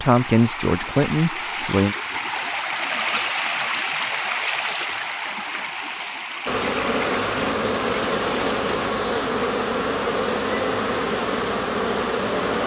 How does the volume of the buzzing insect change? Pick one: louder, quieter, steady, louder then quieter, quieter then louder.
steady.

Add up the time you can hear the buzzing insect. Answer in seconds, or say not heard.
6 s.